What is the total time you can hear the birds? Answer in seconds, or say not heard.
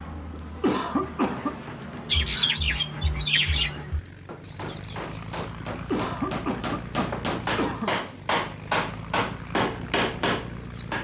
9 s.